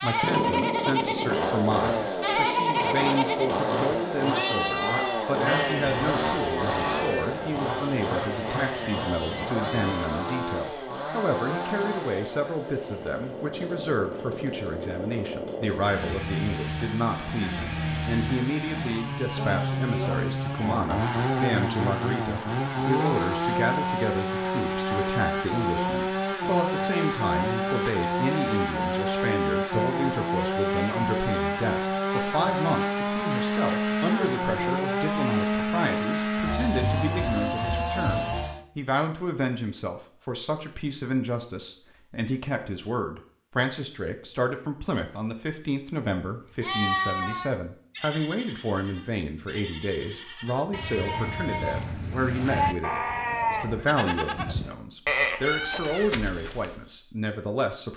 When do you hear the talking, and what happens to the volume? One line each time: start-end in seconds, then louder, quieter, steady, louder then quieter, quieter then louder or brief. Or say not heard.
0.0-57.9 steady.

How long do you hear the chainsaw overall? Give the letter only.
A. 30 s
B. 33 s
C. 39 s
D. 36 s
C.